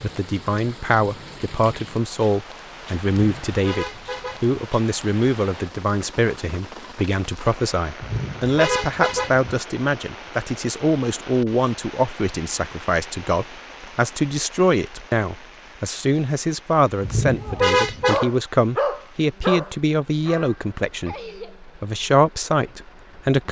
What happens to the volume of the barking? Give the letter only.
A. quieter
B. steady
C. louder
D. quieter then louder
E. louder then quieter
A.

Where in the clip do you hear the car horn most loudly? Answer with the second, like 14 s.
18 s.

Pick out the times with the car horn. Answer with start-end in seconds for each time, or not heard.
3.2-4.5, 8.0-9.5, 17.0-18.2.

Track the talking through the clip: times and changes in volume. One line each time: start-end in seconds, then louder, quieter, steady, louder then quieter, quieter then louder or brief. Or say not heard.
0.0-23.4 steady.